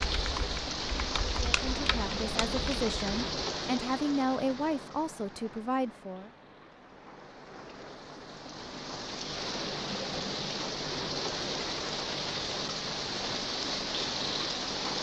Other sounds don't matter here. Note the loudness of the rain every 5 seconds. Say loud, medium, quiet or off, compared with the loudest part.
loud, medium, loud.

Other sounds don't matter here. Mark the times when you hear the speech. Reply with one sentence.
The speech can be heard from 1.3 to 6.3 s.